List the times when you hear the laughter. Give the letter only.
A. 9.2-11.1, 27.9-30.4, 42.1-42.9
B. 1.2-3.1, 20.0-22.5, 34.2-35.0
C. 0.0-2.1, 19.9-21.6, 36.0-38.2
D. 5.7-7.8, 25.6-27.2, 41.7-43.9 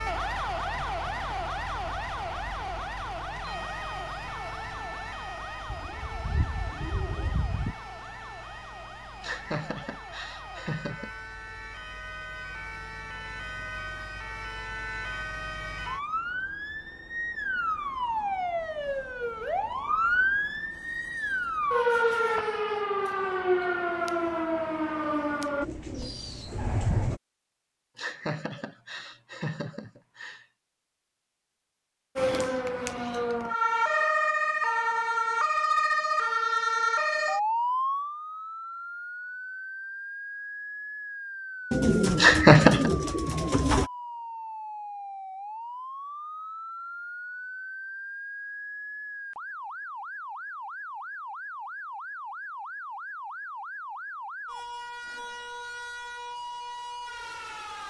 A.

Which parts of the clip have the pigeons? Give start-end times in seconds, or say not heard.
5.7-7.8, 25.6-27.2, 41.7-43.9.